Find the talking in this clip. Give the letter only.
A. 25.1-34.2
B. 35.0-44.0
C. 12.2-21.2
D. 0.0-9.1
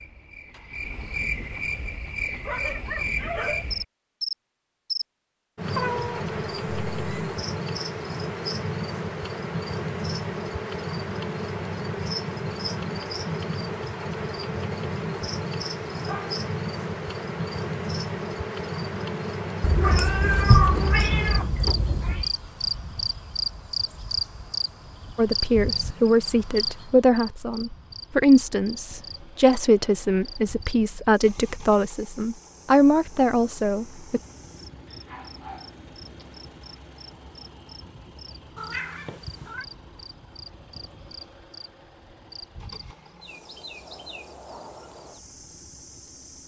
A.